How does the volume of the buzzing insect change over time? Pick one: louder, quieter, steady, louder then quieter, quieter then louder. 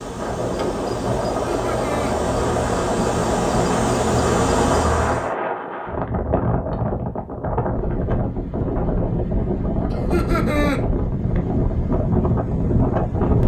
louder.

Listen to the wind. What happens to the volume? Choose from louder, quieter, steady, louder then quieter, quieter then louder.
steady.